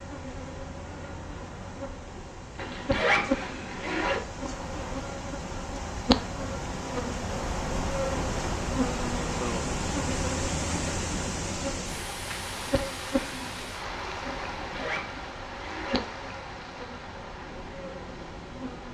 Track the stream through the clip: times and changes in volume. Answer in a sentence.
The stream can be heard from 0.0 to 18.8 s, getting louder then quieter.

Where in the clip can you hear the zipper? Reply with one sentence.
The zipper can be heard from 2.5 to 4.2 s and from 14.6 to 16.1 s.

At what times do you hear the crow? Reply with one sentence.
You can't hear the crow here.